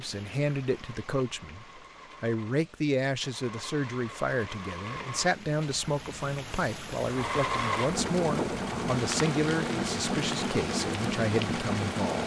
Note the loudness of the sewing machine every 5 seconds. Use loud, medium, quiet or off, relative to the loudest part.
quiet, loud, loud.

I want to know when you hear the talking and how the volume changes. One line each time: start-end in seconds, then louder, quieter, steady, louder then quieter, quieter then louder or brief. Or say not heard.
0.0-12.2 steady.